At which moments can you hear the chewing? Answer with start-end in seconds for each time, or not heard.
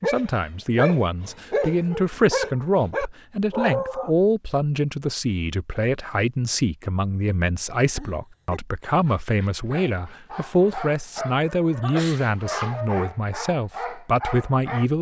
not heard.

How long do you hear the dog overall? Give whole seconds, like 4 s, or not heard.
11 s.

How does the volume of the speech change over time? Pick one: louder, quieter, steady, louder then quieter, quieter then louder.
steady.